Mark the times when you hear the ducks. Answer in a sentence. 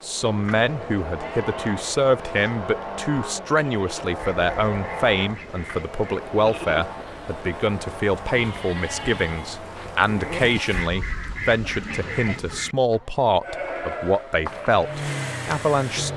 You can hear the ducks from 4.2 to 6.2 s and from 10.7 to 12.8 s.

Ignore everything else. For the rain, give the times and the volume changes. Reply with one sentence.
The rain can't be heard in this clip.